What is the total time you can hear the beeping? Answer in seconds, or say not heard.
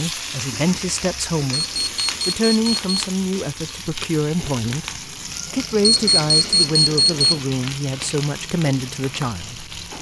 3 s.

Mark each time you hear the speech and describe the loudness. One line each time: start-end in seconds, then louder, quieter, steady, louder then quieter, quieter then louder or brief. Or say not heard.
0.0-1.6 brief
2.2-9.9 steady.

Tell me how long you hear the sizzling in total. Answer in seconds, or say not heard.
10 s.